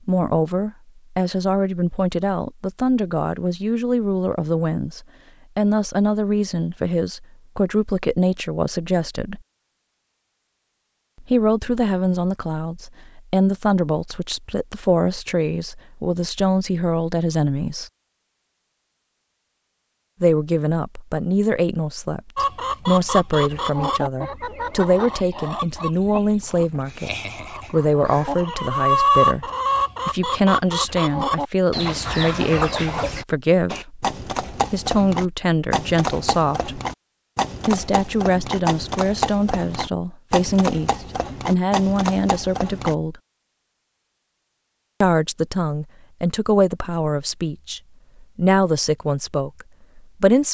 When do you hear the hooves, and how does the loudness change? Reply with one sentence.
The hooves can be heard from 33.7 to 43.0 s, at a steady volume.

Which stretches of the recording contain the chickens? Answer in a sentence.
The chickens can be heard from 22.4 to 33.2 s.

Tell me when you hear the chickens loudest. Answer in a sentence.
The loudest moment of the chickens is at 29 seconds.